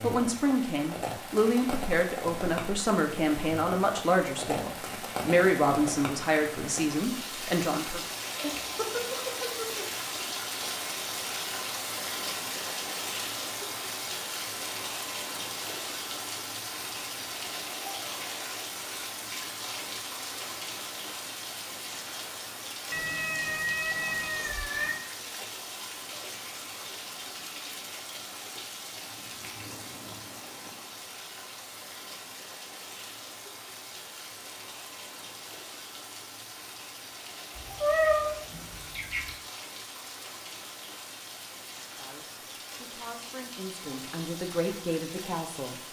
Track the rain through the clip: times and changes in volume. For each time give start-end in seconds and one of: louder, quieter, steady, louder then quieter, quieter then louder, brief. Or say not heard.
0.0-45.8 quieter.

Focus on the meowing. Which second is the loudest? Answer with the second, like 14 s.
38 s.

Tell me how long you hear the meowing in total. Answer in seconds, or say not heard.
5 s.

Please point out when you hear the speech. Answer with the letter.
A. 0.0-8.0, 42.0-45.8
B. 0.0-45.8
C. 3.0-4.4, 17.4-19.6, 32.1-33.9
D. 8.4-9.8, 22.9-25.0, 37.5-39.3
A.